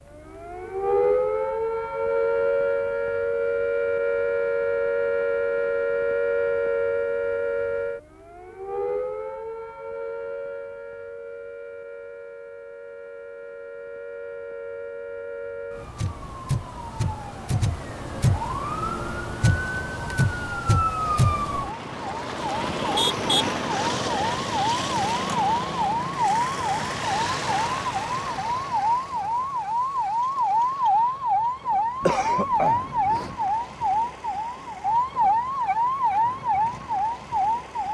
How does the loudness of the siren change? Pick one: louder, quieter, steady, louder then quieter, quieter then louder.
quieter then louder.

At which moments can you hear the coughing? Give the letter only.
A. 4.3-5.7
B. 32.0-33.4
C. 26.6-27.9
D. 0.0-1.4
B.